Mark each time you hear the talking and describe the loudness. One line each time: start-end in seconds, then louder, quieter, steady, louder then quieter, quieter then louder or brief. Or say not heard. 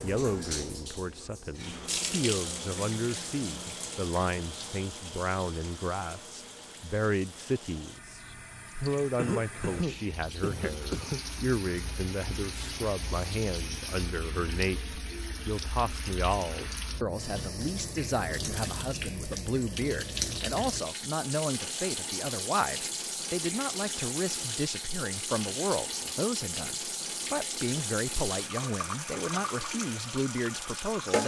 0.0-31.2 steady.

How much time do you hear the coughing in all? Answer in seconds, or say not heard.
2 s.